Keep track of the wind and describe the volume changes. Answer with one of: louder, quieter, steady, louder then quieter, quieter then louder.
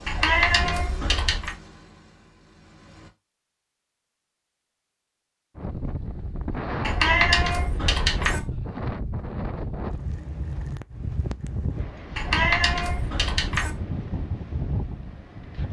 steady.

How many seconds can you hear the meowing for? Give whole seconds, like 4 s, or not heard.
5 s.